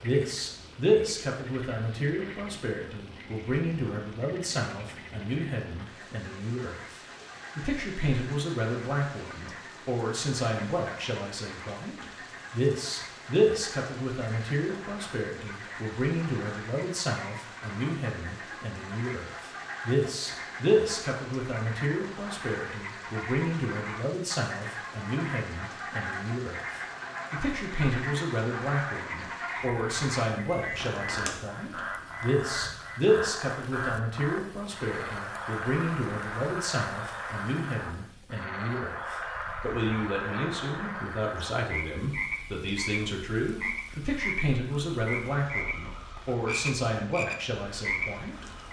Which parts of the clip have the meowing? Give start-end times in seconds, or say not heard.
30.6-31.3.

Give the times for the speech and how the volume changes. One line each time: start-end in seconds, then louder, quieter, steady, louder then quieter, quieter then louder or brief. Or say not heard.
0.0-48.6 steady.